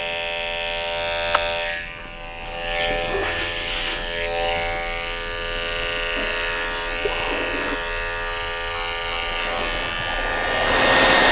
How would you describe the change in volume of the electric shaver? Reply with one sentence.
The loudness of the electric shaver stays about the same.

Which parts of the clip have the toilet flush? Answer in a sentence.
You can hear the toilet flush from 3.0 to 4.1 s and from 6.0 to 7.8 s.